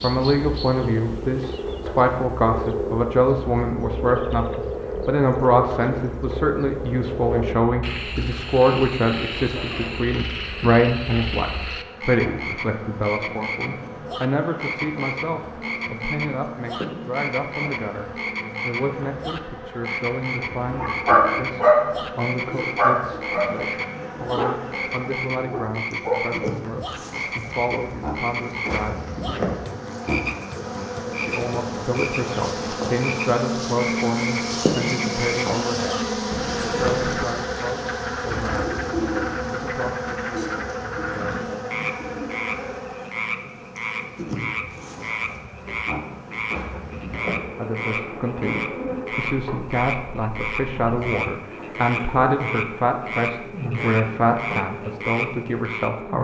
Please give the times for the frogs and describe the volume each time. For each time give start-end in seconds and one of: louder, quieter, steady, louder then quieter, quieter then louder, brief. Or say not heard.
0.0-56.0 steady.